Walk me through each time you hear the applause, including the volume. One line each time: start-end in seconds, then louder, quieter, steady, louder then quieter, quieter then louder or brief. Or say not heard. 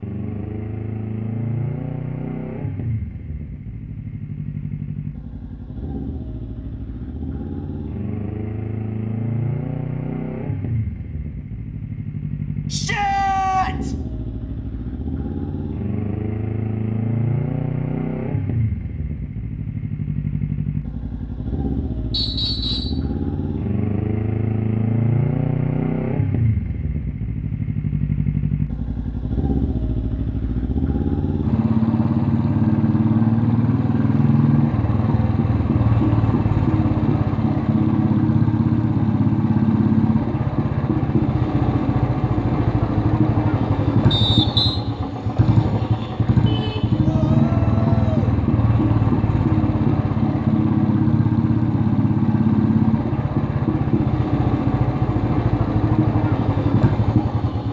not heard.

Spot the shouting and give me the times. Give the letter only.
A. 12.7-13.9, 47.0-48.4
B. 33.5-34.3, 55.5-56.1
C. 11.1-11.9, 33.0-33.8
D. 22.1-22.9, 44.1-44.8
A.